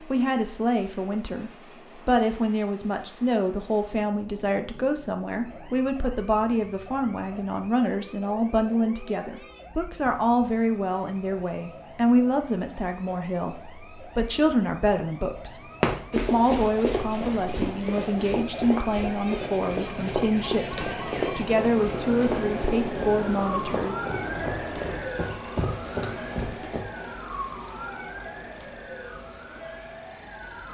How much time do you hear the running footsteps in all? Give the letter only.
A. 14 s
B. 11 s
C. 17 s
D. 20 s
B.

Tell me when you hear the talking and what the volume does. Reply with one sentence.
You can hear the talking from 0.0 to 23.9 s, at a steady volume.